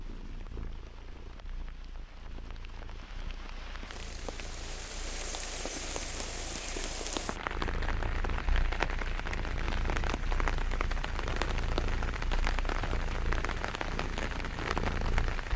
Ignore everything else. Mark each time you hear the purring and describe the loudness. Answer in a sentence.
The purring can be heard from 0.0 to 15.5 s, getting louder.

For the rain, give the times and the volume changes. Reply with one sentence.
The rain can be heard from 0.0 to 15.5 s, getting louder.